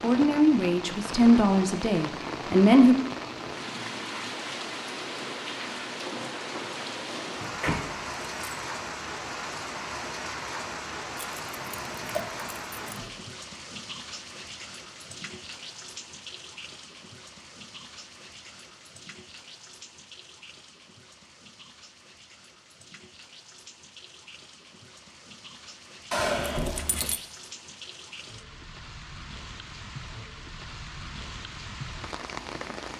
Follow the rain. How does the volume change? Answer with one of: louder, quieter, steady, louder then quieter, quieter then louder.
quieter then louder.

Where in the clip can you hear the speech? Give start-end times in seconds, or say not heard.
0.0-3.0.